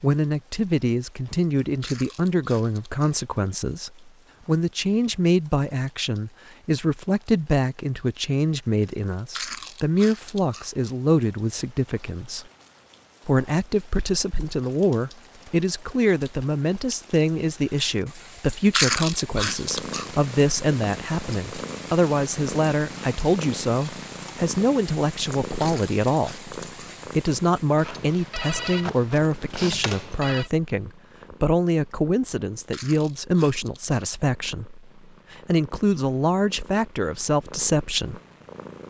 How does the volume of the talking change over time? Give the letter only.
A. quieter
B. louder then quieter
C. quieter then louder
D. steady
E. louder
D.